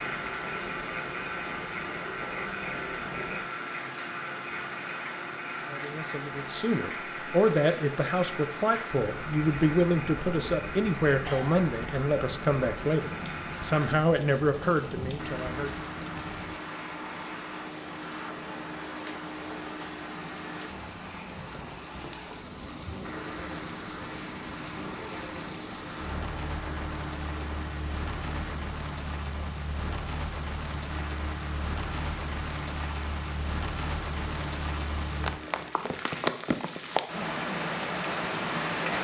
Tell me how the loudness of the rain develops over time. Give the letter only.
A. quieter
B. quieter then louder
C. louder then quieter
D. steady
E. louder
E.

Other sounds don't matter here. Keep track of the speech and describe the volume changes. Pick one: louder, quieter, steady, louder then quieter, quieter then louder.
steady.